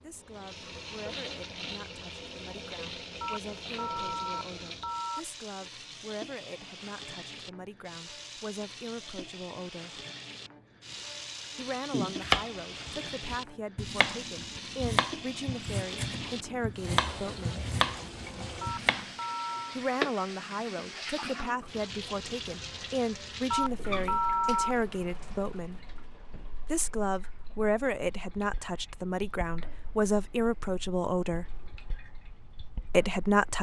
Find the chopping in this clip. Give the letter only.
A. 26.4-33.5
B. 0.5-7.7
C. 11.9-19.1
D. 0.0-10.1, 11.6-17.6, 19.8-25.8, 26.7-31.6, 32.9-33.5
C.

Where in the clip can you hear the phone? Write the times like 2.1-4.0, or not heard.
3.2-5.2, 18.6-19.8, 23.5-24.8.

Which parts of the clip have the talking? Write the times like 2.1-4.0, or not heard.
0.0-10.1, 11.6-17.6, 19.8-25.8, 26.7-31.6, 32.9-33.5.